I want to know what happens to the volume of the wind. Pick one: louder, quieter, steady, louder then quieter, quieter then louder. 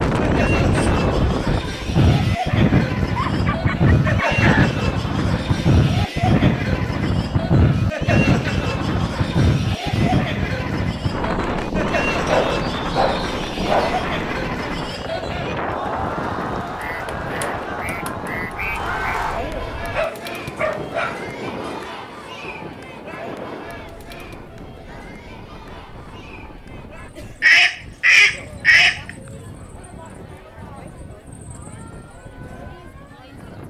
quieter.